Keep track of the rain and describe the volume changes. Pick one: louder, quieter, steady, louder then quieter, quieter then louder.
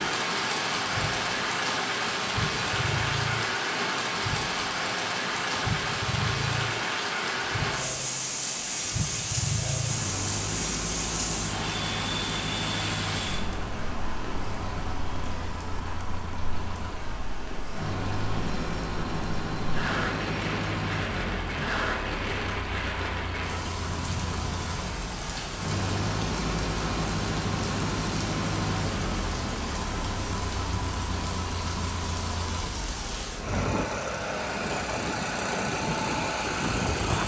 quieter.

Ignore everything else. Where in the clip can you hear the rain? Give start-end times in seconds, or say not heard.
0.0-37.2.